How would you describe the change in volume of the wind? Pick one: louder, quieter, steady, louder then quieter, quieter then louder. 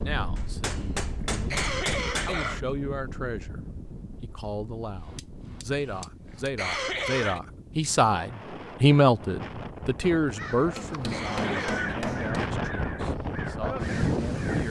quieter then louder.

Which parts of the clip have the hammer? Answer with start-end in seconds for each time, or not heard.
0.3-2.4, 5.0-6.5, 10.8-12.4.